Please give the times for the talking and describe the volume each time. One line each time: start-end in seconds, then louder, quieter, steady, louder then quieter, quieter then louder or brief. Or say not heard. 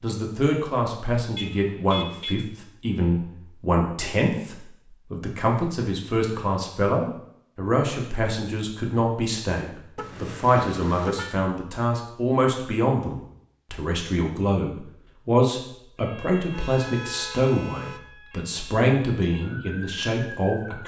0.0-20.8 steady.